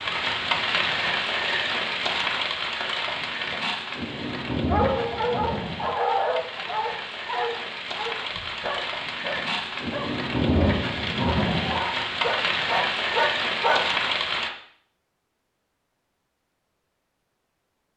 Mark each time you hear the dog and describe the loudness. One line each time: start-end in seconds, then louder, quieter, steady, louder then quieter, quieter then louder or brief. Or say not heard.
4.7-13.8 quieter then louder.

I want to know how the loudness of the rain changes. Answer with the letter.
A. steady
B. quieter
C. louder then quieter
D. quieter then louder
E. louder
D.